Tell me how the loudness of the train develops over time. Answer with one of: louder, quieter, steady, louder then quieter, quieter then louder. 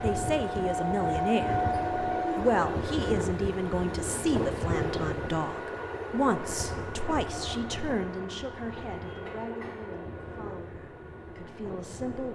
quieter.